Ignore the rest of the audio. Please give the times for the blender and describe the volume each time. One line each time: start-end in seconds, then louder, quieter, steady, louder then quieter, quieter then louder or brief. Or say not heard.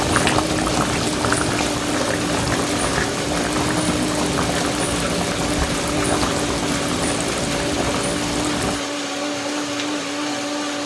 0.0-10.8 steady.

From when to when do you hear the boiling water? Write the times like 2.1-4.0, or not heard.
0.0-8.8.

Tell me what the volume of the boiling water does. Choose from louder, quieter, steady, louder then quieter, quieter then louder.
steady.